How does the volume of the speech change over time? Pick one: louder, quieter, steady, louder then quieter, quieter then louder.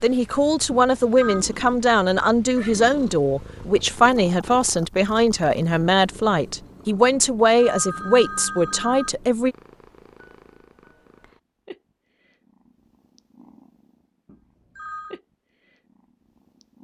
steady.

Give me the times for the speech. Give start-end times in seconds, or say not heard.
0.0-9.6.